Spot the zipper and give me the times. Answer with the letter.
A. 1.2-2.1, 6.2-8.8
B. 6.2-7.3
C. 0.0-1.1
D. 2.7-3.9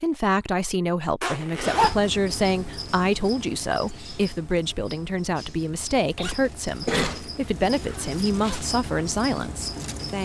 A.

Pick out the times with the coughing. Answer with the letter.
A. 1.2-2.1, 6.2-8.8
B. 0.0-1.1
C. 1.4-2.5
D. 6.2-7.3
D.